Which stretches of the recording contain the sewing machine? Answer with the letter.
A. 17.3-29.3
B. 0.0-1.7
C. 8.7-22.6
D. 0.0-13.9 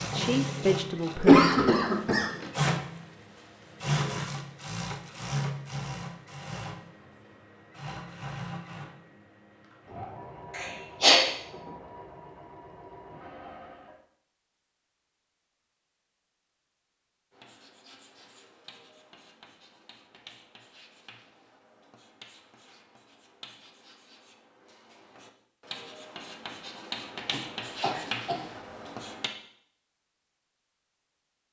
D.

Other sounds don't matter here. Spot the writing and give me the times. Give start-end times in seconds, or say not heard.
17.3-29.3.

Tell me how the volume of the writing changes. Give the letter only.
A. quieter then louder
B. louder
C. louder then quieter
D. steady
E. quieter
B.